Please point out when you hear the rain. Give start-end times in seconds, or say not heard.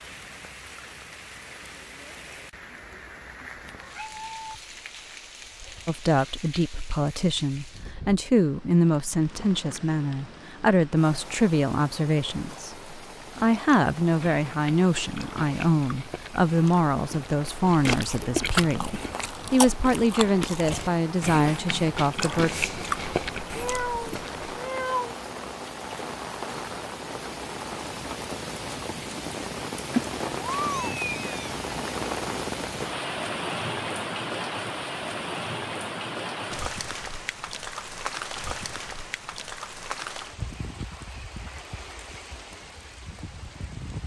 0.0-44.0.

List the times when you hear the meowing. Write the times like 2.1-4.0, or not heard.
3.8-4.6, 23.6-25.1, 29.9-31.5.